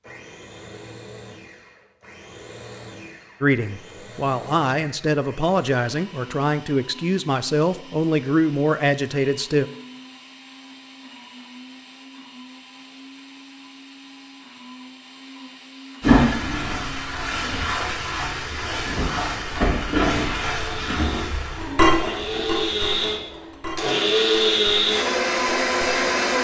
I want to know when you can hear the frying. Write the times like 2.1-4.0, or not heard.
16.0-26.3.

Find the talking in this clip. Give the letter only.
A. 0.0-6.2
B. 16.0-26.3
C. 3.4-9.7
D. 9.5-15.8
C.